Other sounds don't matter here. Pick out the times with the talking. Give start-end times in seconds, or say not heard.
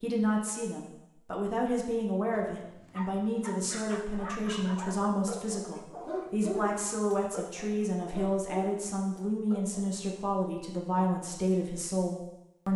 0.0-12.7.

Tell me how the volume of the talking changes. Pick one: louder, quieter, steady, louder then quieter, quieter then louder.
steady.